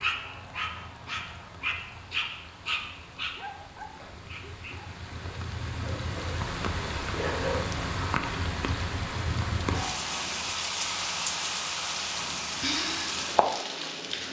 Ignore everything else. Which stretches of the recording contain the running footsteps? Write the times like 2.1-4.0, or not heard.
not heard.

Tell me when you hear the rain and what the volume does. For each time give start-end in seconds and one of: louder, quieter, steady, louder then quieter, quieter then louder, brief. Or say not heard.
0.0-14.2 louder.